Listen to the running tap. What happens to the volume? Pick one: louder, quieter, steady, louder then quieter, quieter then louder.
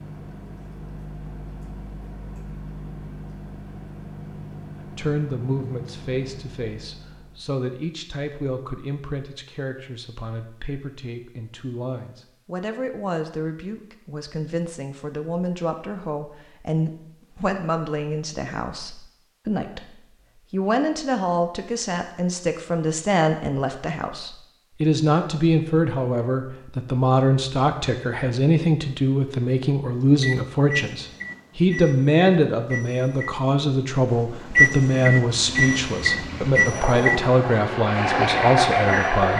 louder.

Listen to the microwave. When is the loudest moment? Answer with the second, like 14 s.
35 s.